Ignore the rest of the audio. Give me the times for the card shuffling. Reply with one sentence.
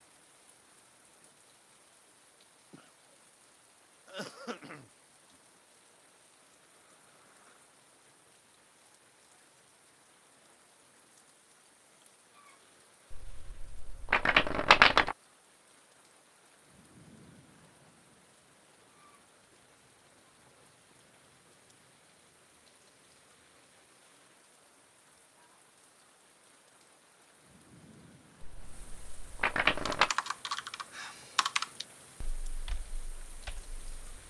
You can hear the card shuffling from 13.1 to 15.2 s and from 28.4 to 30.1 s.